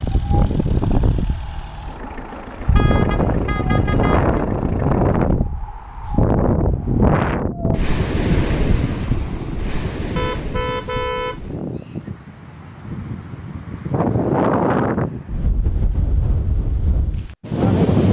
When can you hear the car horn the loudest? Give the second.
11 s.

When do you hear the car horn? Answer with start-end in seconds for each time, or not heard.
2.3-4.2, 10.2-12.1.